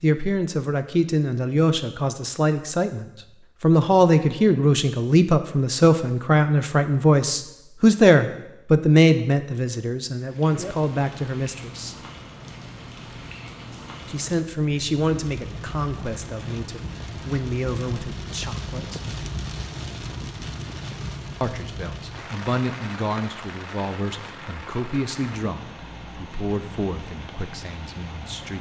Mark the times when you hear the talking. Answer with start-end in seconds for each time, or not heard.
0.0-11.9, 14.1-19.1, 21.4-28.5.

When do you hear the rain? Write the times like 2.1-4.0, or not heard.
10.1-28.5.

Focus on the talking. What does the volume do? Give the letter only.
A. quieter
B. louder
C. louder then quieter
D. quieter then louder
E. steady
A.